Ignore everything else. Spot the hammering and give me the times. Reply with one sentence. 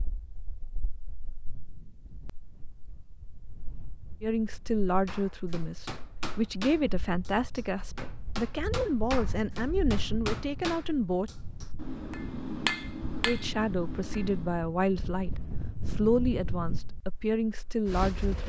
You can hear the hammering from 5.0 to 14.6 s.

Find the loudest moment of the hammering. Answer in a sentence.
The volume of the hammering peaks at 13 seconds.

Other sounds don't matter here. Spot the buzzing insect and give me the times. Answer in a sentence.
The buzzing insect can't be heard in this clip.